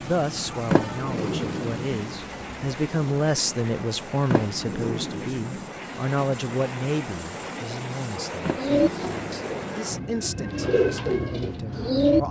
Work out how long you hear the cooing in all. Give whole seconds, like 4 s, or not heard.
4 s.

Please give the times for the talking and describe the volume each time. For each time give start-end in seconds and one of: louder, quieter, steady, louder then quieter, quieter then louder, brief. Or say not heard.
0.1-12.2 louder then quieter.